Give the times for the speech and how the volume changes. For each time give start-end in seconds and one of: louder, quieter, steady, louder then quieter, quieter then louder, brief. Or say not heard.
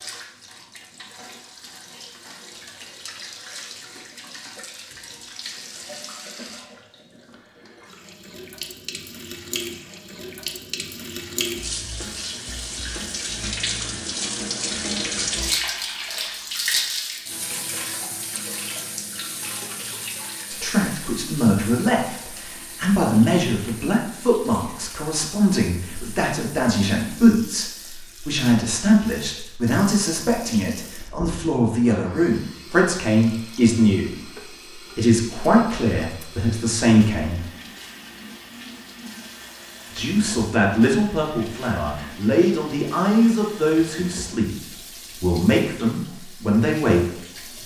20.5-37.5 steady
40.0-47.2 steady.